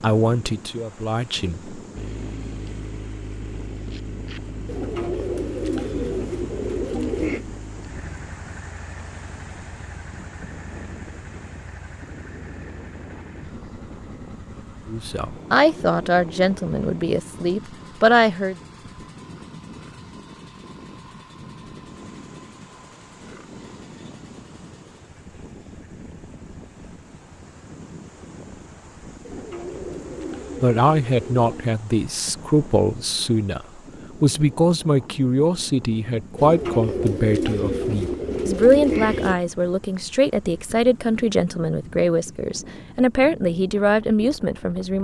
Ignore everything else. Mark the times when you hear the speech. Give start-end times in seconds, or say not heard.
0.0-1.8, 14.8-18.6, 30.6-44.9.